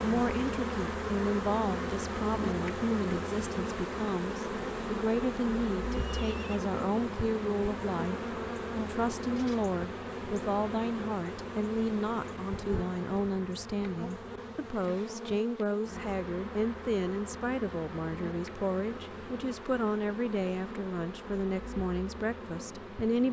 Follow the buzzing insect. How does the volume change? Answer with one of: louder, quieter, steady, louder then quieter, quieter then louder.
quieter.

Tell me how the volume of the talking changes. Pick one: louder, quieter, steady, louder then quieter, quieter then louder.
steady.